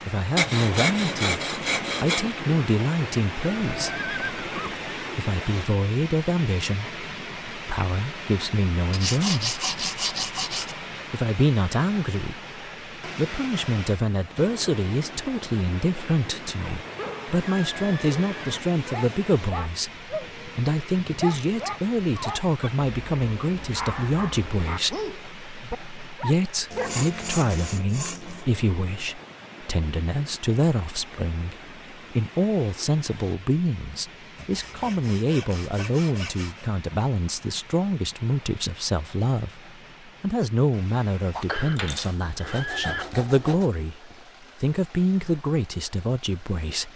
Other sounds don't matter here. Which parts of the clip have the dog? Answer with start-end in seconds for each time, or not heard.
18.9-27.1.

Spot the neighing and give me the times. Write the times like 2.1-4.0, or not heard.
3.5-5.0, 16.6-18.6, 41.5-43.0.